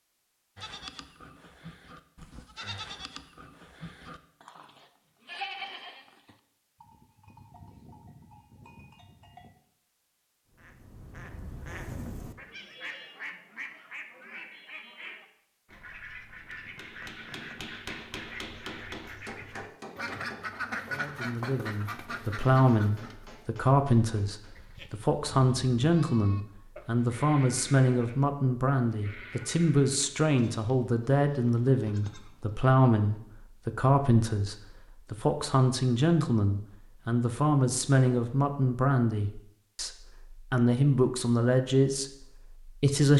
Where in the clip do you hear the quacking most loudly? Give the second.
21 s.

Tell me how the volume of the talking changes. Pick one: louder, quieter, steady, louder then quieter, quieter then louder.
steady.